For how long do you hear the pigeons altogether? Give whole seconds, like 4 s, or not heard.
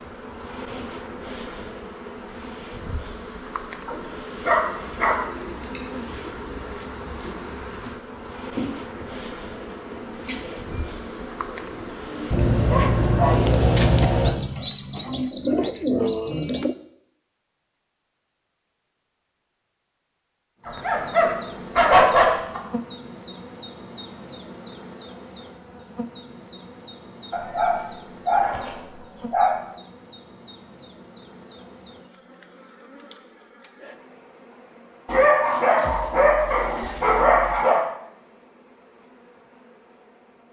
12 s.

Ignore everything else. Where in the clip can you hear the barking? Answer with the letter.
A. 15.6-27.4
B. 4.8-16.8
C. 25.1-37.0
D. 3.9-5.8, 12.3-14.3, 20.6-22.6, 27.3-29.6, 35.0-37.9
D.